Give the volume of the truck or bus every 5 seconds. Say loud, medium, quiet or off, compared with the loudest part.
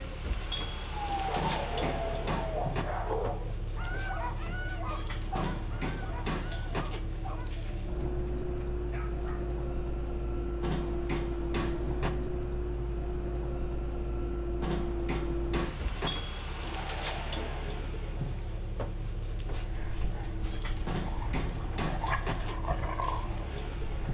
loud, loud, loud, loud, medium.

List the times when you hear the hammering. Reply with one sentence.
You can hear the hammering from 1.4 to 2.9 s, from 5.3 to 6.8 s, from 10.6 to 12.1 s, from 14.6 to 16.1 s and from 20.9 to 22.4 s.